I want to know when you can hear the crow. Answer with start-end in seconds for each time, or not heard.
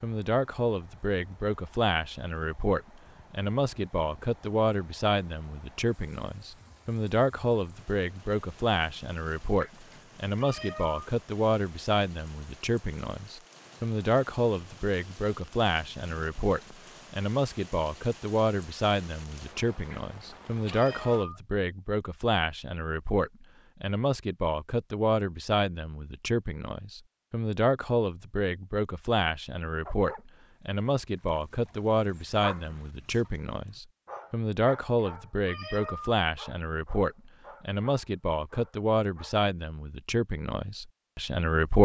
not heard.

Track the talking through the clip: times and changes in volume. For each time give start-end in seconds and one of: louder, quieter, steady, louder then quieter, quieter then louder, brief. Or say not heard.
0.0-41.7 steady.